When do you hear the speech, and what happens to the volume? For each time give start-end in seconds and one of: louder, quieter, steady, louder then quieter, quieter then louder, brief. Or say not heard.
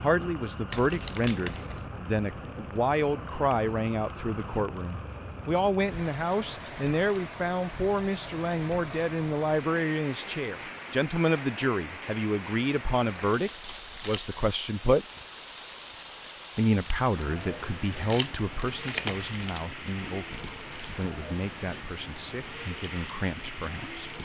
0.0-15.1 steady
16.6-24.1 quieter.